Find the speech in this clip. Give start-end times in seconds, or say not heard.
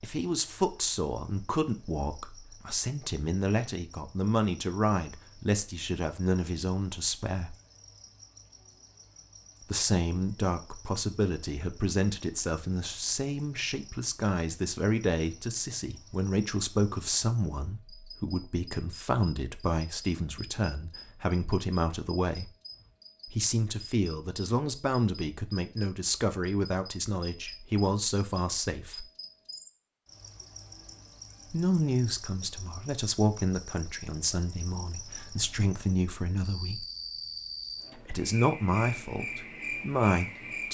0.0-7.5, 9.7-22.5, 23.2-29.1, 31.5-36.9, 38.0-40.6.